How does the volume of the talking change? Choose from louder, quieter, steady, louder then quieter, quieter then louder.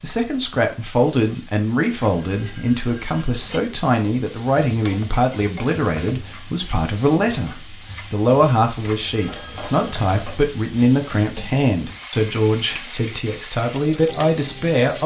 steady.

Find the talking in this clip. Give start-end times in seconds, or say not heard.
0.0-15.0.